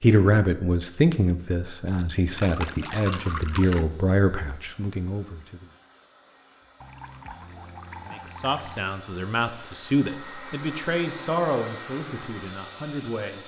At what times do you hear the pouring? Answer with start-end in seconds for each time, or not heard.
2.4-3.9, 6.8-8.8.